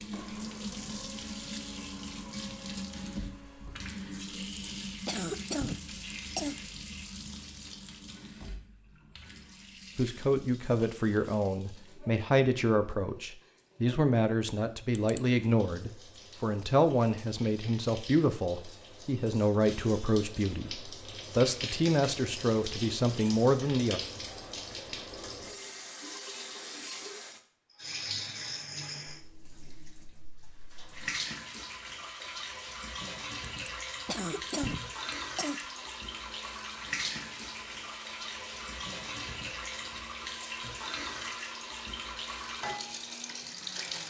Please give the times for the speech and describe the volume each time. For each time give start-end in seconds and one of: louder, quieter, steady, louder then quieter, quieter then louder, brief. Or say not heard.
9.9-24.0 steady.